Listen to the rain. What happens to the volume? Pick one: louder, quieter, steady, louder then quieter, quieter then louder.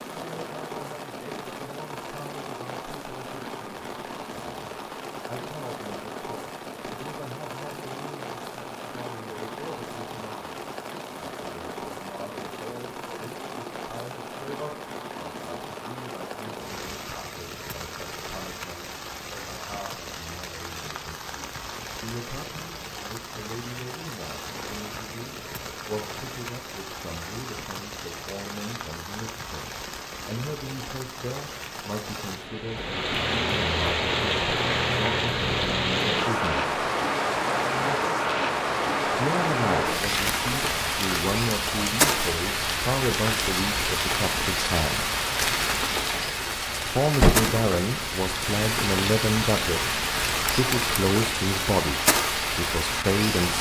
louder.